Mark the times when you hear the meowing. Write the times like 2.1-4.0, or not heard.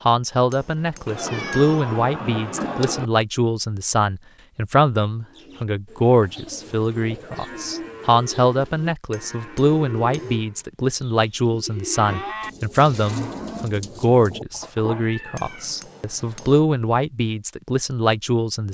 1.1-3.1, 14.5-15.8.